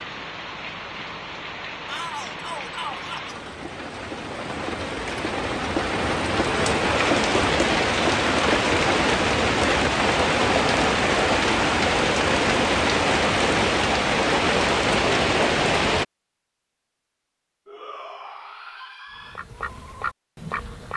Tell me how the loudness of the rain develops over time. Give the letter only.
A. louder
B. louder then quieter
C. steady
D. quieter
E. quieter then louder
A.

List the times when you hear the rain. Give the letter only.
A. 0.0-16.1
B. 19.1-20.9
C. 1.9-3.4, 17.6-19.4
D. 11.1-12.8
A.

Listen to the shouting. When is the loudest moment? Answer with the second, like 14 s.
2 s.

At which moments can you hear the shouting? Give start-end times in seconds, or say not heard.
1.9-3.4, 17.6-19.4.